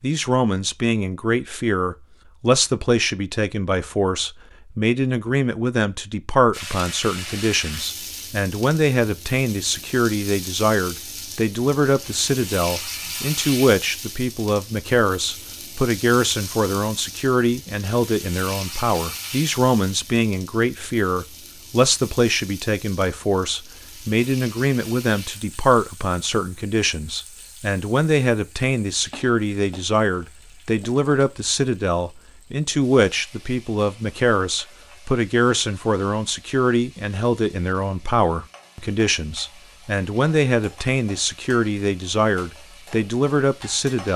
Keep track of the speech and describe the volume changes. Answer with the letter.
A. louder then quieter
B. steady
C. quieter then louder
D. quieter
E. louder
B.